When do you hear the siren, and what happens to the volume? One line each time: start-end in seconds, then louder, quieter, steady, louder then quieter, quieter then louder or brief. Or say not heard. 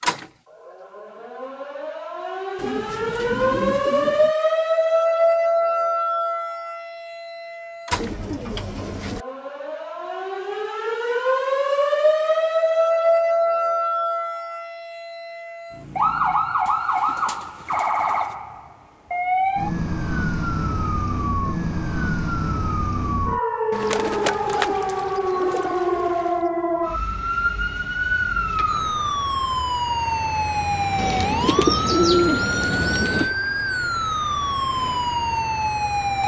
0.0-36.2 steady.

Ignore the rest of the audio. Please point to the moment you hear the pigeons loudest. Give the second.
32 s.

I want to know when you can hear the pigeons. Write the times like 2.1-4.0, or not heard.
2.5-4.3, 7.9-9.2, 16.6-18.4, 23.7-26.2, 30.9-33.4.